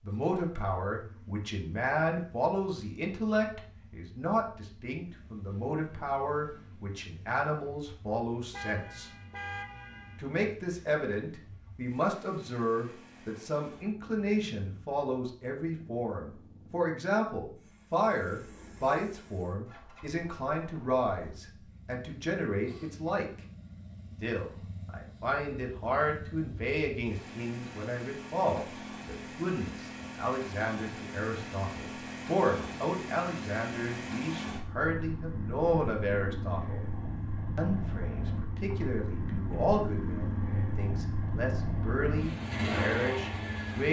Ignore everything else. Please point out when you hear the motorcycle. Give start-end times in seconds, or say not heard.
0.0-43.8.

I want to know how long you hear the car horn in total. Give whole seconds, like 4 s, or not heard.
2 s.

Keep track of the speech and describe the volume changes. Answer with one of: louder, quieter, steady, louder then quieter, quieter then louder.
steady.